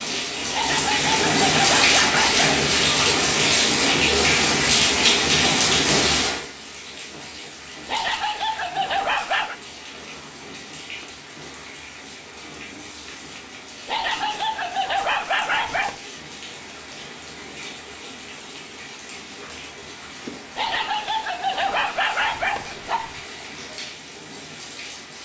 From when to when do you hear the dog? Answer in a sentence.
The dog can be heard from 0.5 to 2.6 s, from 7.8 to 9.6 s, from 13.8 to 16.0 s and from 20.6 to 23.2 s.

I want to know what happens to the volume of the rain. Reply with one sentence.
The volume of the rain goes down.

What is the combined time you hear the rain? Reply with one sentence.
You can hear the rain for 25 seconds altogether.